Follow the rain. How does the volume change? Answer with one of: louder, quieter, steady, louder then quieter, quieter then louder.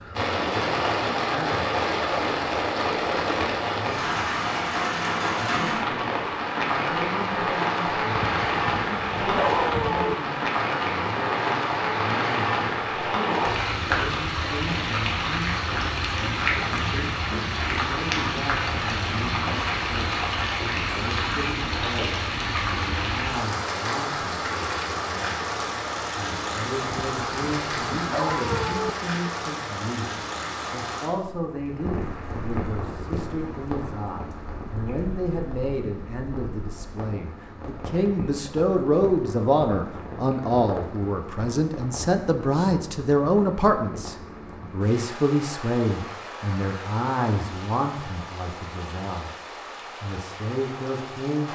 quieter.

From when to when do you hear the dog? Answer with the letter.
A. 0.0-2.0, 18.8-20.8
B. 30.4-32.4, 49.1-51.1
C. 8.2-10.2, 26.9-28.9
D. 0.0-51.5
C.